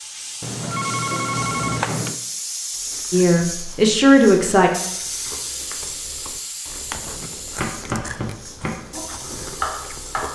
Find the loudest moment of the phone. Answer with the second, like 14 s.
2 s.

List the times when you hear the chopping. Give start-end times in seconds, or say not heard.
6.9-10.3.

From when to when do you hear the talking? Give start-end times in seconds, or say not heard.
3.1-4.7.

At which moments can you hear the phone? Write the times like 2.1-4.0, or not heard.
0.4-2.2.